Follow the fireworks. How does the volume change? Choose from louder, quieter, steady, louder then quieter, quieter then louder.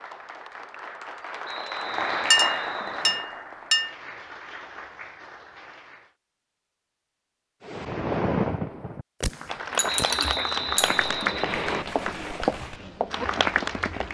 quieter.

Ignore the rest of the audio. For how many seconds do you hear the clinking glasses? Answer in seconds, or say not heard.
3 s.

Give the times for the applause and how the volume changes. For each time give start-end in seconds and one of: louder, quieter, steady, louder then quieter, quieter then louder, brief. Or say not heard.
0.0-6.1 louder then quieter
9.3-14.0 steady.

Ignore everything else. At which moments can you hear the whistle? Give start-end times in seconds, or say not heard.
1.4-3.3, 9.8-11.8.